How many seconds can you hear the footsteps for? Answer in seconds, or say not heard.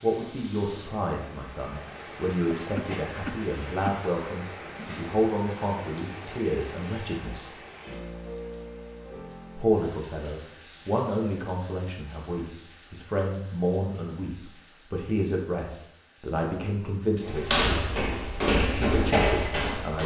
3 s.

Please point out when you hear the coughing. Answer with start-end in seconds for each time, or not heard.
2.5-4.0.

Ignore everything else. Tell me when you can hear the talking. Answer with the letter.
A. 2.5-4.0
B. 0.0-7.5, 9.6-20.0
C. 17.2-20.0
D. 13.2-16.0
B.